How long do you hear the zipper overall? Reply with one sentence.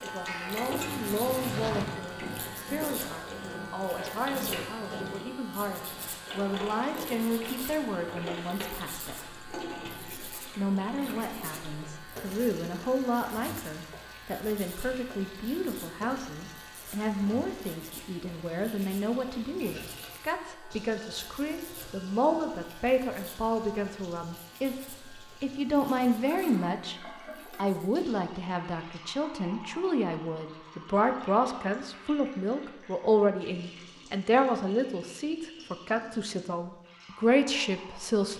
The zipper can be heard for 2 seconds in total.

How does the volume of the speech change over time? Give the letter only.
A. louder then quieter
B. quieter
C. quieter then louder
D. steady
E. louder
E.